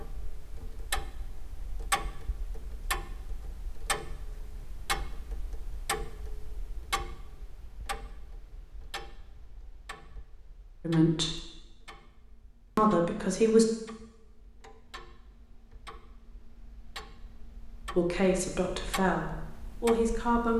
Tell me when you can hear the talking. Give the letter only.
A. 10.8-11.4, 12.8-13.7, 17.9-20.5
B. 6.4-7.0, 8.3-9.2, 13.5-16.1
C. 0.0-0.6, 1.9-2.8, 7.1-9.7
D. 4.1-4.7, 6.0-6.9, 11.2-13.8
A.